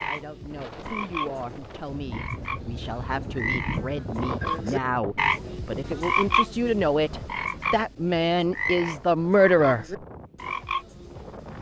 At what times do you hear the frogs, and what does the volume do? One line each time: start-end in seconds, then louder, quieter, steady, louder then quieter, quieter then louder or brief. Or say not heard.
0.0-11.5 louder then quieter.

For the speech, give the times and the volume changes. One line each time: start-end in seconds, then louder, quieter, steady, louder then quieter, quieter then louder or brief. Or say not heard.
0.0-9.8 louder.